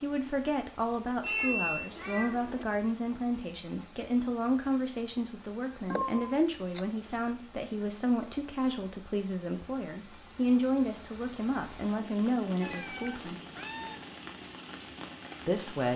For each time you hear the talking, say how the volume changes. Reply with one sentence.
You can hear the talking from 0.0 to 13.3 s, at a steady volume; and briefly from 15.4 to 15.9 s.